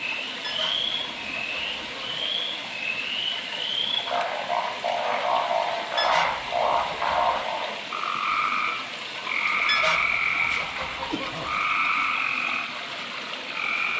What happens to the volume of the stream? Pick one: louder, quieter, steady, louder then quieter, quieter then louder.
steady.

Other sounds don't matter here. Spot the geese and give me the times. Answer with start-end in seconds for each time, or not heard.
0.4-2.3, 6.0-7.5, 9.7-11.7.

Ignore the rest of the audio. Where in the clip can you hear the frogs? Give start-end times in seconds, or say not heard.
0.0-13.9.